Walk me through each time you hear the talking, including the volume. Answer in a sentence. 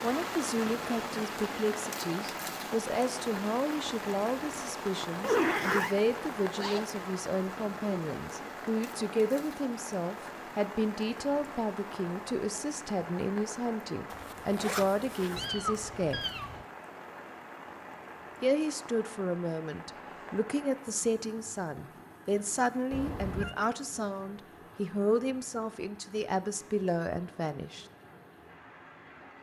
You can hear the talking from 0.0 to 16.2 s, at a steady volume; and from 18.4 to 27.9 s, at a steady volume.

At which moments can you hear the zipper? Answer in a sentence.
The zipper can be heard from 5.2 to 6.0 s, from 14.1 to 15.5 s and from 19.9 to 20.4 s.